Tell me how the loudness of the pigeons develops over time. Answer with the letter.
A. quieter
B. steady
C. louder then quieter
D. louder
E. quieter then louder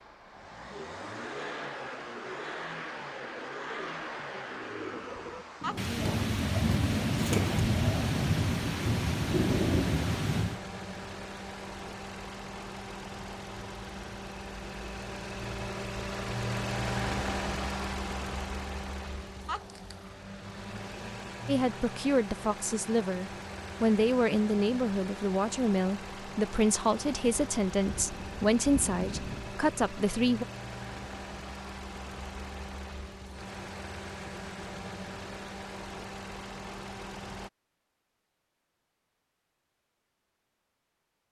D.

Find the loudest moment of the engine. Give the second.
17 s.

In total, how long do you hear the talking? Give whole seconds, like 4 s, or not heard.
9 s.